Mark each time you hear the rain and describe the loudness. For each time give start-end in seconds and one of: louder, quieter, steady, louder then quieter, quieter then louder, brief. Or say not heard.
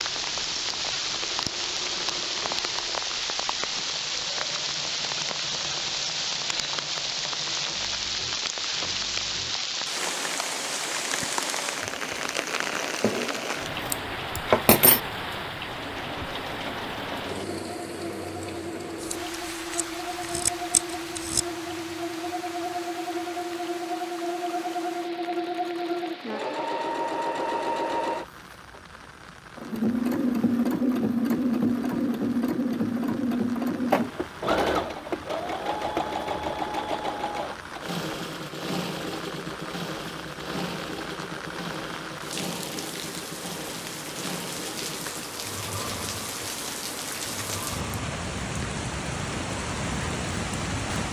0.0-51.0 quieter then louder.